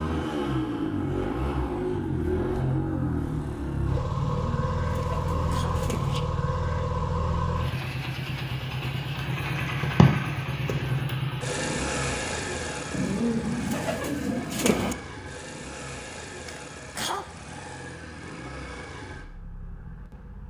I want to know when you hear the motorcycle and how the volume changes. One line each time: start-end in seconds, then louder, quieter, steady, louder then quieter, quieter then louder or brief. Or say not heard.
0.0-20.4 quieter.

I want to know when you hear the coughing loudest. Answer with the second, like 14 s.
17 s.